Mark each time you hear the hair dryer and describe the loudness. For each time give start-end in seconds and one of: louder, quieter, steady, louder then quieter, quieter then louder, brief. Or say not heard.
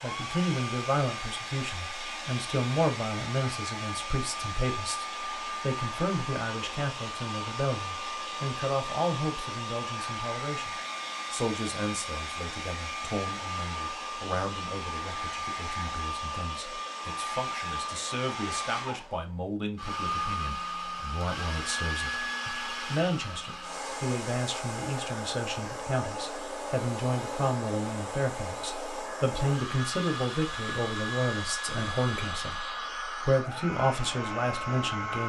0.0-35.2 steady.